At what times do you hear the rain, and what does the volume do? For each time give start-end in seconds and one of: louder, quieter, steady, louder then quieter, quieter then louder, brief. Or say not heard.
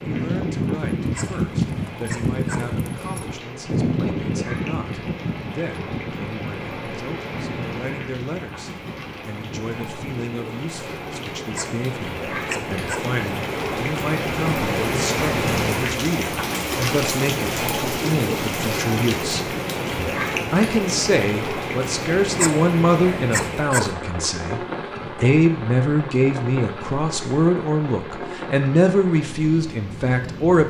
0.0-30.6 louder then quieter.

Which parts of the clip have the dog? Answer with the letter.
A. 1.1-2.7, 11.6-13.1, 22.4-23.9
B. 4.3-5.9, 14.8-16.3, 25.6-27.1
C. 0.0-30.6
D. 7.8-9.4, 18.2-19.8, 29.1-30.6
A.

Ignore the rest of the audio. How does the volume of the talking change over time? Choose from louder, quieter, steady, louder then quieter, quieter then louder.
louder.